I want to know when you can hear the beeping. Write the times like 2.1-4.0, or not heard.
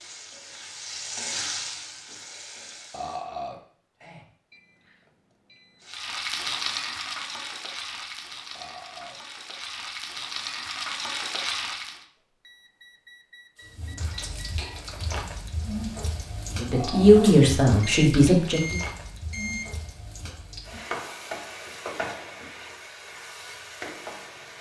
4.5-5.8, 12.3-14.6, 17.8-19.7.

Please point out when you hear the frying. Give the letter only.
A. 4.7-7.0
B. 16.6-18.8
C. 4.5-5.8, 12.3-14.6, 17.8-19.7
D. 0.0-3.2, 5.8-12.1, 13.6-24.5
D.